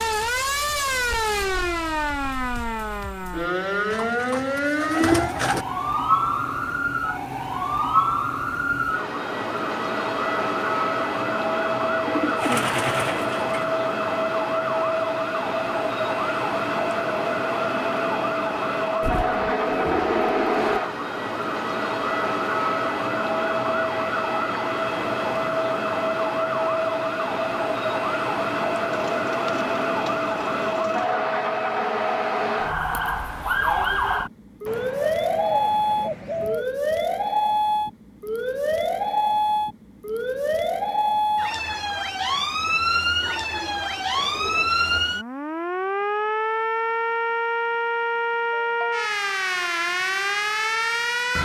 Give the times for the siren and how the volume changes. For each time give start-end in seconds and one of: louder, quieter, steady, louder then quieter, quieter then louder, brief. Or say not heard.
0.0-51.4 steady.